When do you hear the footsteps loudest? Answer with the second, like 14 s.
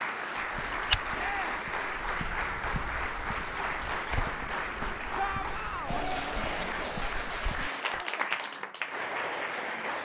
1 s.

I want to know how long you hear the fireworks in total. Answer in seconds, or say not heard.
not heard.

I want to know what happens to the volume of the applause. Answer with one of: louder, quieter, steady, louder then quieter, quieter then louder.
steady.